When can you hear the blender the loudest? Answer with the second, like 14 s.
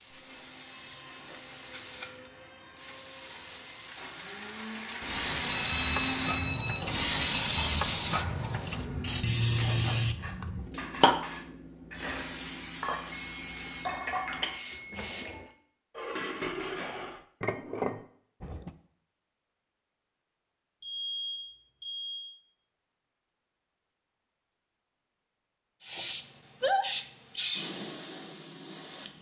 6 s.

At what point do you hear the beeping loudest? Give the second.
6 s.